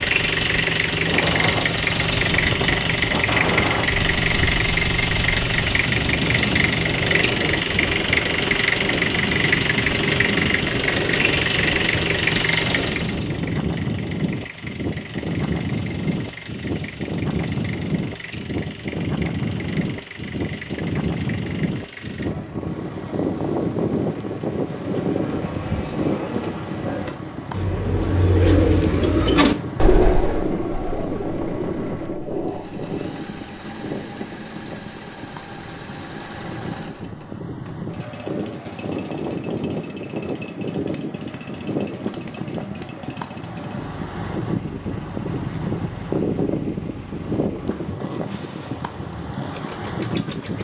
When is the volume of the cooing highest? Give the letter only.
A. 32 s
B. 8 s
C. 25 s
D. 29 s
D.